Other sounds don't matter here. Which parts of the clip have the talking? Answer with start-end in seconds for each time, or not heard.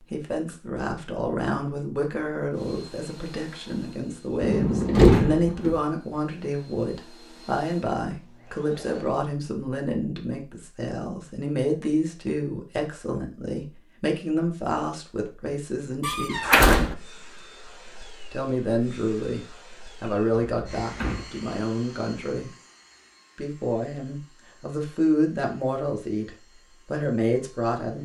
0.0-16.6, 18.3-22.5, 23.4-28.0.